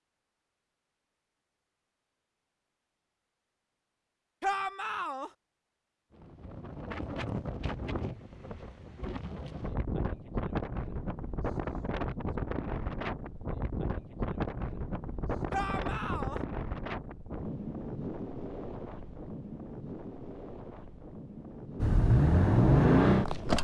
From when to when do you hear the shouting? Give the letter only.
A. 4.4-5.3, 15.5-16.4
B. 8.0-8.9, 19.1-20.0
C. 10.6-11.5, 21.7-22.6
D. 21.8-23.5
A.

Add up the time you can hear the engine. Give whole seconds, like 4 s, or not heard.
2 s.